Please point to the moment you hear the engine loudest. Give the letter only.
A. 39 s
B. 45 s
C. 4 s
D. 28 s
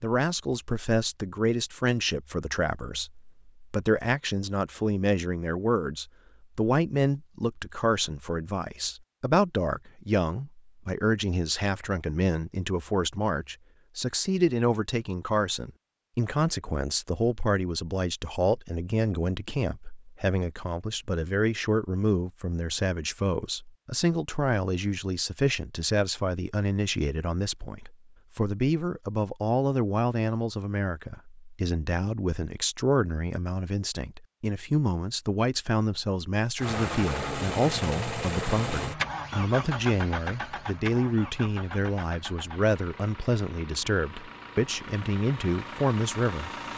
A.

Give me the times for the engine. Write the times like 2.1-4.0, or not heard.
36.5-46.7.